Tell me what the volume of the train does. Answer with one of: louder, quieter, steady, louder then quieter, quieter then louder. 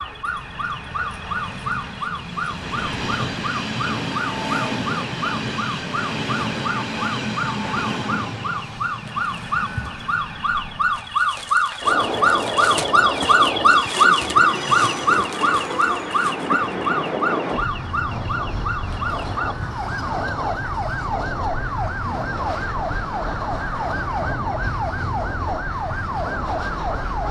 steady.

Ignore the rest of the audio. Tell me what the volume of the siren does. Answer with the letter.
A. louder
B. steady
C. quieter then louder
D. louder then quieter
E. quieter
D.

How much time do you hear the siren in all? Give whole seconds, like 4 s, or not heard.
27 s.